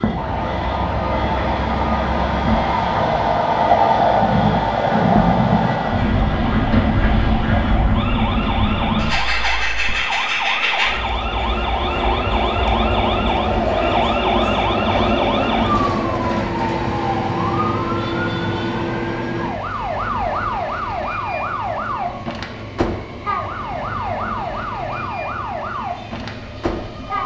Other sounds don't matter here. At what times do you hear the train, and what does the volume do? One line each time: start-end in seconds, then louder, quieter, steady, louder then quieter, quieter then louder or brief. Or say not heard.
0.0-27.2 quieter.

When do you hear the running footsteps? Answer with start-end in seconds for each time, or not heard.
not heard.